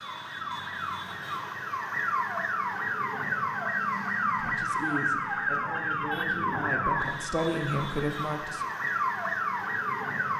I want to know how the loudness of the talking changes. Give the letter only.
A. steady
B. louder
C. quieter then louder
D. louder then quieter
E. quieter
B.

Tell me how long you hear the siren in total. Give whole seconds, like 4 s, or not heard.
10 s.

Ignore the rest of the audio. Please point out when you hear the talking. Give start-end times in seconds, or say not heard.
4.4-8.7.